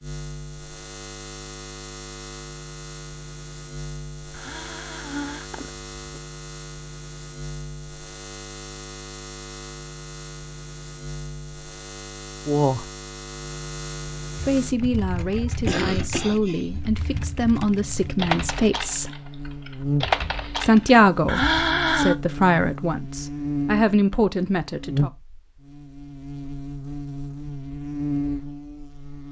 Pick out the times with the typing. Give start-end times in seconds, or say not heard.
14.6-21.1.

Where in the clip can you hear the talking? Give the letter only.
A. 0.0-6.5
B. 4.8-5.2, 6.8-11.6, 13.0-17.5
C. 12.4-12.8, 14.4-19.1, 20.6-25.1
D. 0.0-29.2
C.